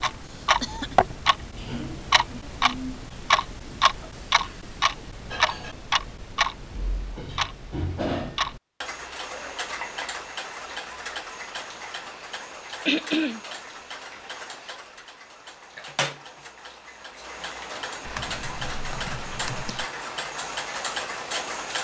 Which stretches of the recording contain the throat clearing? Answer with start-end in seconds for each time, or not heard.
0.2-0.9, 12.8-13.4.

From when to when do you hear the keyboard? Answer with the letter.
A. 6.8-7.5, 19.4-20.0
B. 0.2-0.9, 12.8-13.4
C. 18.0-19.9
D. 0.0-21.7
C.